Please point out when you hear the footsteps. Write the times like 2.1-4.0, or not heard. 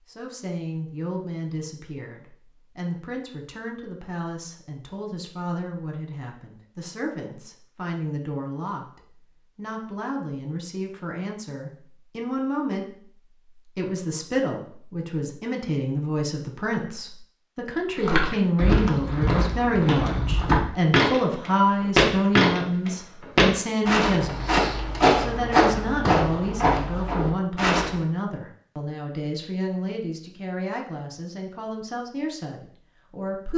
17.9-28.0.